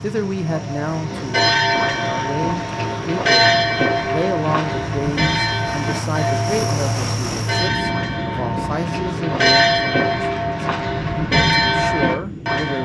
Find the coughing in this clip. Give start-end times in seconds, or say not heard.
not heard.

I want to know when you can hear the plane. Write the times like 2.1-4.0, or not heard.
0.0-12.7.